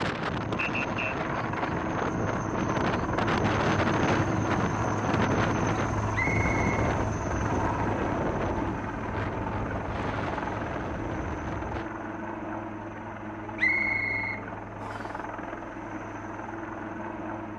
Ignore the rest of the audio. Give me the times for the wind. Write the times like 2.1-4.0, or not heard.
0.0-11.9.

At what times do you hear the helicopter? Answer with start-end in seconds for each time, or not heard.
0.2-17.5.